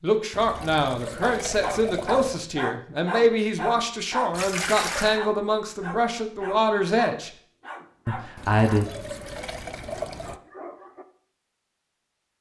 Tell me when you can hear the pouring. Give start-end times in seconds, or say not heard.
0.3-2.5, 4.3-5.2, 8.3-10.4.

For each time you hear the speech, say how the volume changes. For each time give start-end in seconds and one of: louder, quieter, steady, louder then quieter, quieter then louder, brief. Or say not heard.
0.0-7.3 steady
8.1-8.8 brief.